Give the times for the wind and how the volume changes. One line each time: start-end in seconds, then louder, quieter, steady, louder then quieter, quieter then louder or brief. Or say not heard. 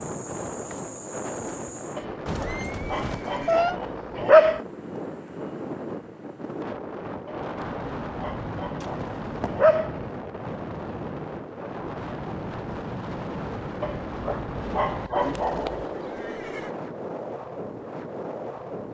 0.0-18.9 steady.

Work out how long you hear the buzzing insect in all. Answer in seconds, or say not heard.
2 s.